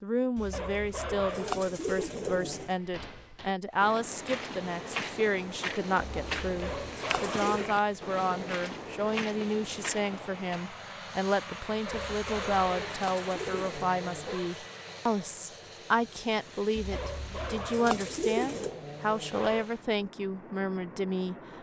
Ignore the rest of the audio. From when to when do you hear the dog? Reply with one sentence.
You can hear the dog from 0.5 to 2.6 s, from 6.6 to 8.6 s, from 11.8 to 14.6 s and from 16.9 to 19.7 s.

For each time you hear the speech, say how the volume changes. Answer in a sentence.
You can hear the speech from 0.0 to 21.4 s, at a steady volume.